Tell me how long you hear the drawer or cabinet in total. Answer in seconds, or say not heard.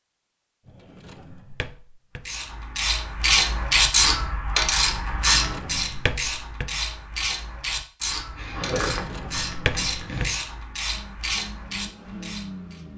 5 s.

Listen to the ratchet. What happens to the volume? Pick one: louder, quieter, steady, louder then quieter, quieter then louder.
quieter.